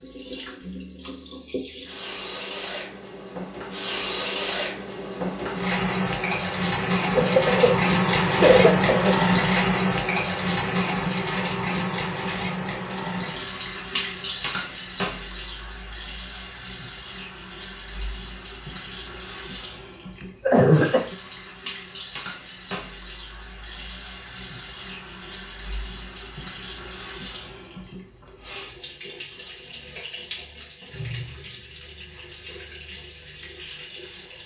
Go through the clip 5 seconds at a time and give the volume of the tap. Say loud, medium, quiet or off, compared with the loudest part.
medium, loud, medium, quiet, quiet, quiet, quiet.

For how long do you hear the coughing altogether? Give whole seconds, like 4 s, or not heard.
3 s.